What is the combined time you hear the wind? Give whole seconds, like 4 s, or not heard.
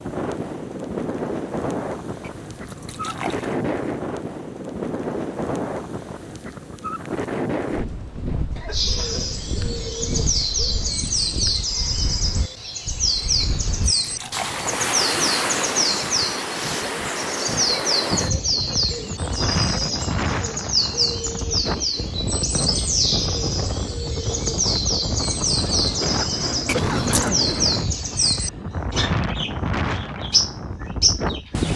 32 s.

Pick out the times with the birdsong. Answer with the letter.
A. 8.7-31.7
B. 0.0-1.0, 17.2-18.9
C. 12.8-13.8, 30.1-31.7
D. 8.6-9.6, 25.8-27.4
A.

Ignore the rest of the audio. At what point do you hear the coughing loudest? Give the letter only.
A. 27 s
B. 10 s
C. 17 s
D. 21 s
A.